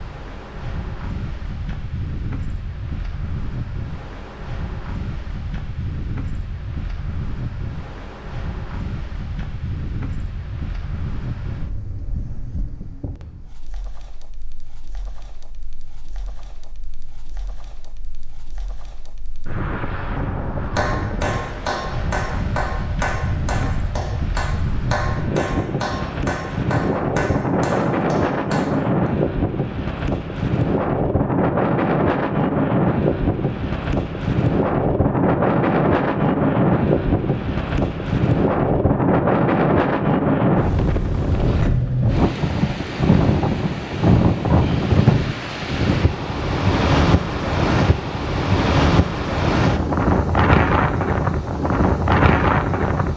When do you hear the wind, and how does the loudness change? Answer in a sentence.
You can hear the wind from 0.0 to 53.1 s, getting louder.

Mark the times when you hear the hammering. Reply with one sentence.
You can hear the hammering from 20.8 to 29.1 s.